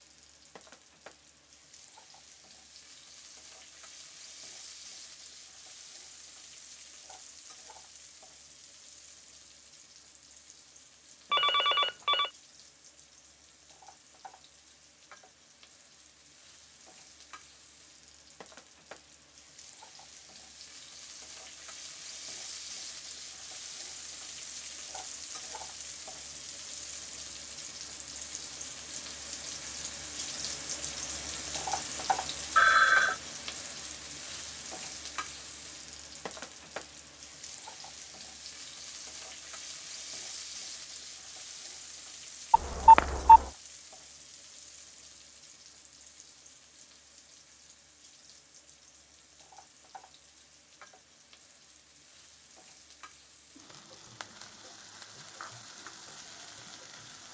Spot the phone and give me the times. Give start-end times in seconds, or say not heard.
11.3-12.3, 32.5-33.1, 42.5-43.4.